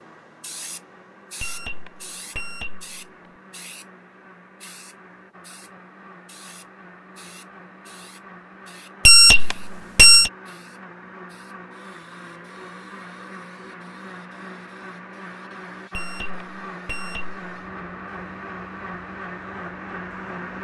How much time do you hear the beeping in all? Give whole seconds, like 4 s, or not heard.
4 s.